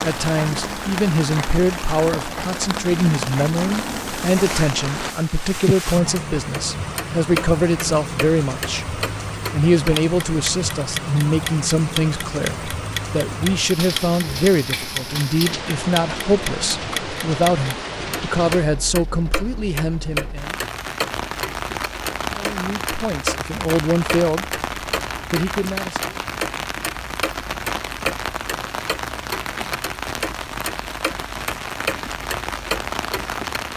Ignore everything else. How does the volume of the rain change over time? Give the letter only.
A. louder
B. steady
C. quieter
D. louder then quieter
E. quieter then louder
B.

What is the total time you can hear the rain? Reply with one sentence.
You can hear the rain for 34 seconds altogether.